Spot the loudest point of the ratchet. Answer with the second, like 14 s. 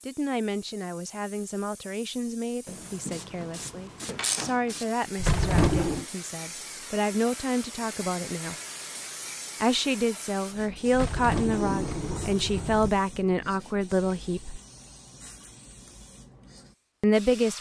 4 s.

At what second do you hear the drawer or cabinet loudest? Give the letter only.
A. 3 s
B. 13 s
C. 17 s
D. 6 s
D.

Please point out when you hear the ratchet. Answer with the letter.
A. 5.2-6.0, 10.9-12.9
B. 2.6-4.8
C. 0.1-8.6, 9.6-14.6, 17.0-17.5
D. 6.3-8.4
B.